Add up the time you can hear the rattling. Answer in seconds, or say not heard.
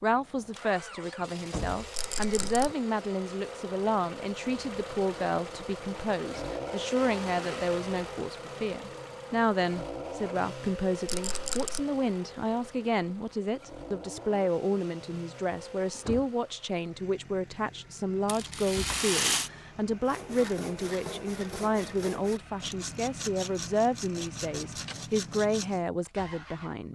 3 s.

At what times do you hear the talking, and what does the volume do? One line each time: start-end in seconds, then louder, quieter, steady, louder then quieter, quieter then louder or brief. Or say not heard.
0.0-26.9 steady.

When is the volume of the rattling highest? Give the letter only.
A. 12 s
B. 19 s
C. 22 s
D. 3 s
B.